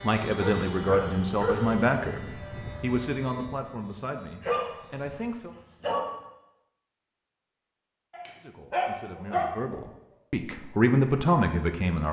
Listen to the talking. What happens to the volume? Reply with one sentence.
The volume of the talking goes down, then up.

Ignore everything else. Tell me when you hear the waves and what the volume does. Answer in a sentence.
The waves can't be heard in this clip.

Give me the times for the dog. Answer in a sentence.
The dog can be heard from 0.3 to 1.9 s, from 4.4 to 6.1 s and from 8.1 to 9.8 s.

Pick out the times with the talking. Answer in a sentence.
You can hear the talking from 0.0 to 5.5 s and from 8.4 to 12.0 s.